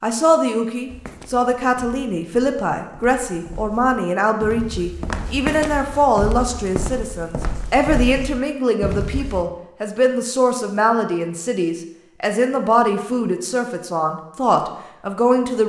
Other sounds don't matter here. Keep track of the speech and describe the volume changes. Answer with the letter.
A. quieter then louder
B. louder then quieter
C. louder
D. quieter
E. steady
E.